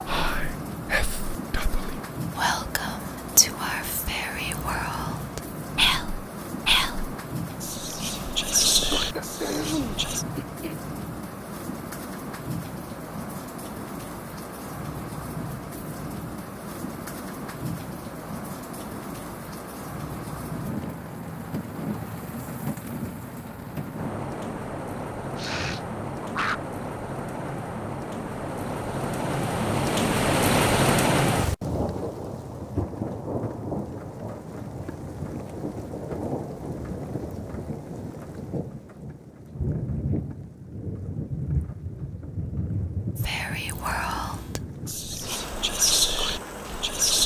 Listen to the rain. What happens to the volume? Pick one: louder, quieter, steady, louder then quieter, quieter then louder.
louder then quieter.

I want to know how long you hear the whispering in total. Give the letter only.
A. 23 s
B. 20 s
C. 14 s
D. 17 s
C.